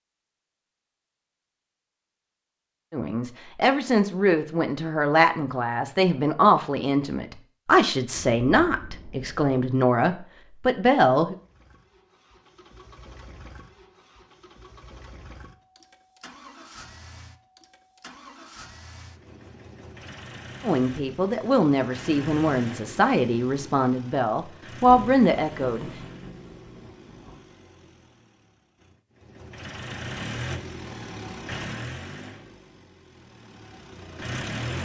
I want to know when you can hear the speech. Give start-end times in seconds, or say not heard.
2.9-11.3, 20.6-25.9.